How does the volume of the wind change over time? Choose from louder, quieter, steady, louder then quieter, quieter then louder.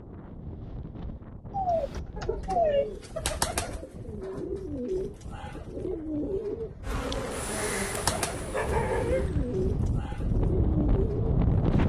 louder.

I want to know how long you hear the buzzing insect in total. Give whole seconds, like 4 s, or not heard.
3 s.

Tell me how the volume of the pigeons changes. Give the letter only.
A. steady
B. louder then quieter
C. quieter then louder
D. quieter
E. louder
A.